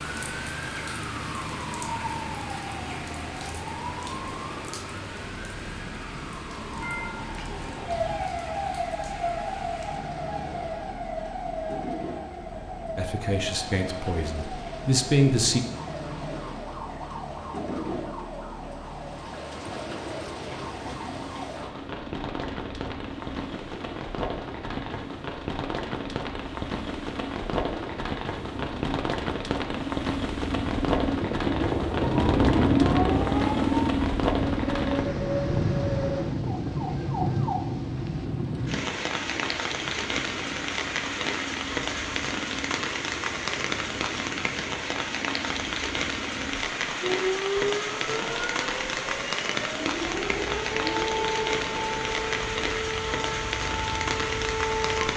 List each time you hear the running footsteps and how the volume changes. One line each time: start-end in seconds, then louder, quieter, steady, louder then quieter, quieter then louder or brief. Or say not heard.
not heard.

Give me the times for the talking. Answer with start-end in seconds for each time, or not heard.
12.9-15.6.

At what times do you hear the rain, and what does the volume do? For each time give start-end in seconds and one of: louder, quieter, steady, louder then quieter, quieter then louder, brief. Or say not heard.
0.0-55.1 louder.